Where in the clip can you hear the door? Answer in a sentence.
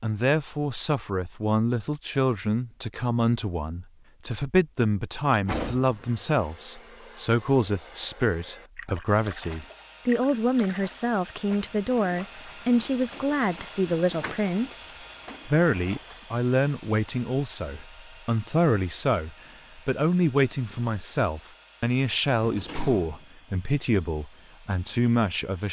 You can hear the door from 5.5 to 6.0 s, from 14.0 to 14.4 s and from 22.4 to 23.2 s.